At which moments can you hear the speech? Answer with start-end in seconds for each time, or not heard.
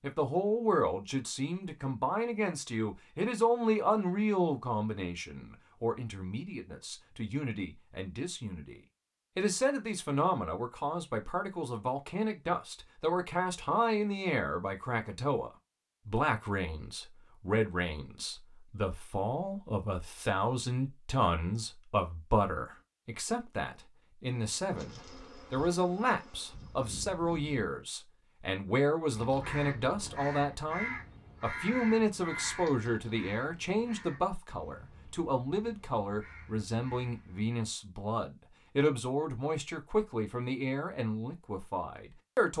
0.0-42.5.